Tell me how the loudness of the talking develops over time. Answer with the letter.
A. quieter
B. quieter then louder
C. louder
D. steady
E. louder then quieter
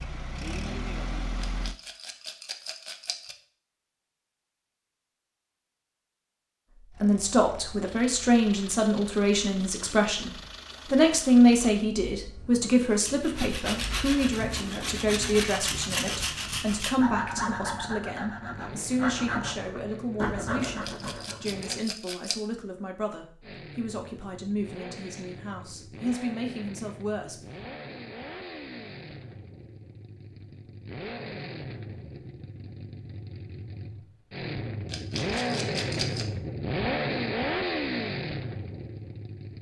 A.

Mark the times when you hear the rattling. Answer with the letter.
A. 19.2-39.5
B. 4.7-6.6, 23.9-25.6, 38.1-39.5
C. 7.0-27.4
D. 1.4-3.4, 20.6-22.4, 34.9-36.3
D.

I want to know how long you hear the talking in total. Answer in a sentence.
You can hear the talking for 20 seconds altogether.